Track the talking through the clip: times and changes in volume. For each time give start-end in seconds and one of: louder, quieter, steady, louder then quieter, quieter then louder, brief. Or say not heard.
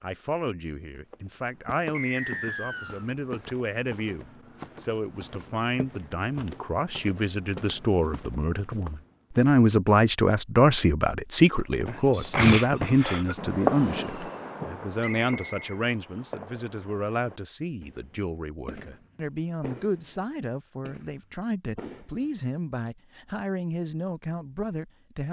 0.0-25.2 louder then quieter.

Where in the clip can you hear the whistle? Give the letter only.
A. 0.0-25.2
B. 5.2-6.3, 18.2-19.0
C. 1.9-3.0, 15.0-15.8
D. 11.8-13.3
C.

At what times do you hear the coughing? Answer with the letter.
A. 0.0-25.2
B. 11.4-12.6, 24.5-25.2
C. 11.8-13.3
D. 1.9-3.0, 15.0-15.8
C.